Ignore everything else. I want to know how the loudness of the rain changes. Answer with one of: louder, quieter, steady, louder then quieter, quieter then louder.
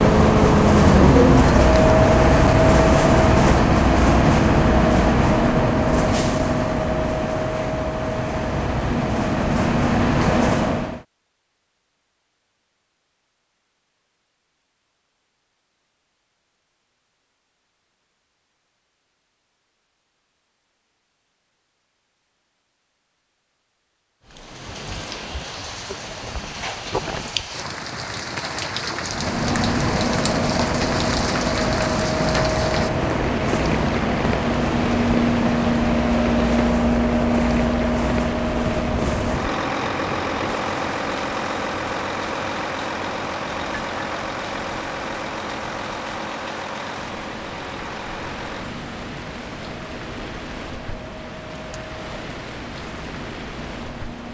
quieter.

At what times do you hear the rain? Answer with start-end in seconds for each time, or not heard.
24.2-54.2.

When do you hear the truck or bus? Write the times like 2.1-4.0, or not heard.
0.0-11.0, 29.0-54.2.